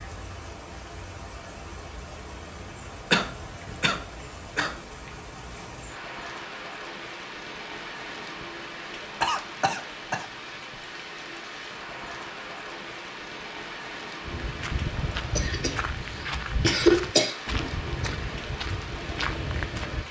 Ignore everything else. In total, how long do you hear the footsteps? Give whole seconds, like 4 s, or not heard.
6 s.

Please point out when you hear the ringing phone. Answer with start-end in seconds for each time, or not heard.
not heard.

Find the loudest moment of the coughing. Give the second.
17 s.